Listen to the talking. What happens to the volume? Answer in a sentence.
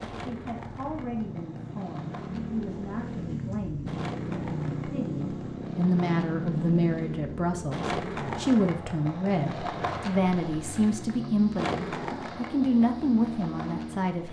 The loudness of the talking goes up.